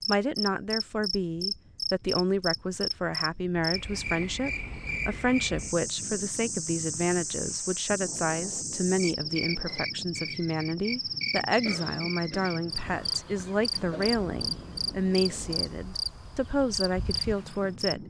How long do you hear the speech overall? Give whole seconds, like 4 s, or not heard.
18 s.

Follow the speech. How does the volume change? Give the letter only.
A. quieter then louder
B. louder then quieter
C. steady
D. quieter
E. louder
C.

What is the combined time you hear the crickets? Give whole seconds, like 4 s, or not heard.
18 s.